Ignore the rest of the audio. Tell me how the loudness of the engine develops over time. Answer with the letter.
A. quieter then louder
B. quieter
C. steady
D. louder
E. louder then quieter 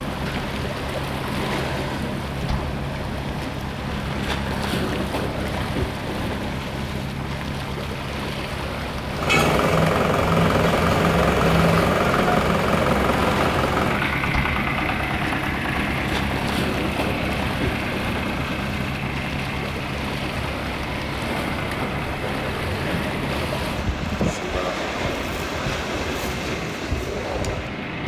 B.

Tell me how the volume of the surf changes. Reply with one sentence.
The volume of the surf stays about the same.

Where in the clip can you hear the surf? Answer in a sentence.
You can hear the surf from 0.0 to 28.0 s.